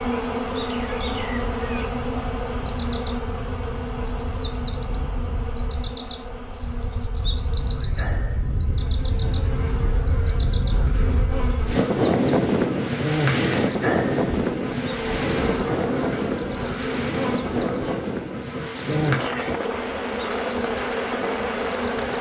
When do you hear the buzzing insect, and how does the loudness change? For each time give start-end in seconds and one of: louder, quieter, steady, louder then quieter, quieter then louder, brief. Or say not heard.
0.0-22.1 quieter then louder.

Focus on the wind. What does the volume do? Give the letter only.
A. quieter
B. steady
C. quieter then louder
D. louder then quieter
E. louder
D.